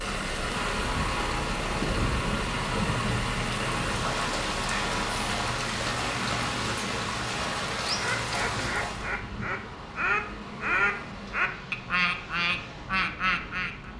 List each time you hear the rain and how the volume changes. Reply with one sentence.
You can hear the rain from 0.0 to 9.2 s, at a steady volume.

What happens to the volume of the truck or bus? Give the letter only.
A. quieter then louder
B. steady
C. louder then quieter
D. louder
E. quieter
E.